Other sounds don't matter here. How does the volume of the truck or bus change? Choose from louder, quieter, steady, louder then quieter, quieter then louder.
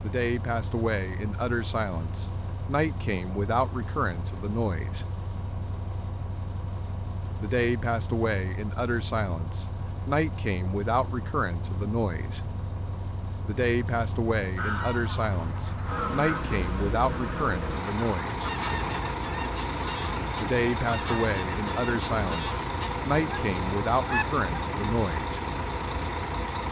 louder.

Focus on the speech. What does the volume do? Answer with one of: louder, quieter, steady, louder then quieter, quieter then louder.
steady.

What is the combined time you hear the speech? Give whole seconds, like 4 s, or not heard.
20 s.